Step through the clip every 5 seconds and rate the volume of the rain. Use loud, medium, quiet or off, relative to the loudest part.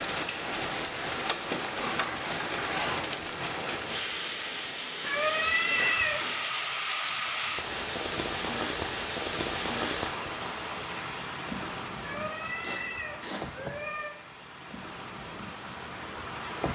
loud, loud, medium, medium.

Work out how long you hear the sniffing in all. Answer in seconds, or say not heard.
3 s.